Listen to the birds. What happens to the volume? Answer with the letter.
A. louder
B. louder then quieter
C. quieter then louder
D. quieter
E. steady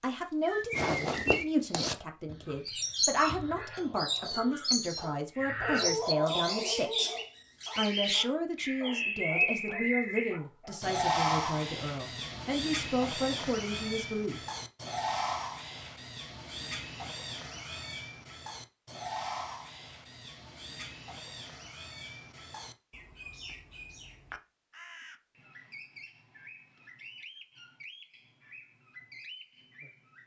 D.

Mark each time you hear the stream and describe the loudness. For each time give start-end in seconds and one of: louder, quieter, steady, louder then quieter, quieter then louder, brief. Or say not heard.
not heard.